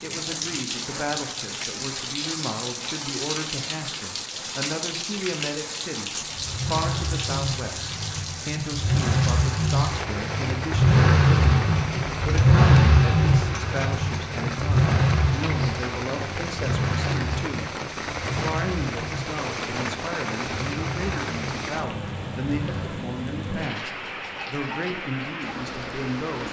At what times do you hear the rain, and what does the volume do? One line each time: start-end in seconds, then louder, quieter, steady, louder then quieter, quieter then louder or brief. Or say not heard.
0.0-26.4 steady.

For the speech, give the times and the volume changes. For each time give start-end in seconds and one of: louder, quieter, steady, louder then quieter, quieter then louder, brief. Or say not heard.
0.0-17.8 steady
18.4-26.4 steady.